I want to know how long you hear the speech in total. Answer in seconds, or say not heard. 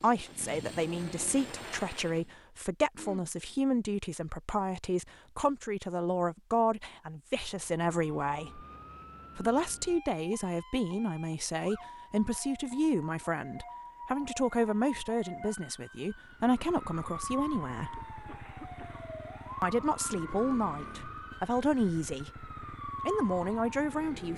21 s.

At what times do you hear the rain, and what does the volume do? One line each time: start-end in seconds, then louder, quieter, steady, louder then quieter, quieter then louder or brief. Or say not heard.
not heard.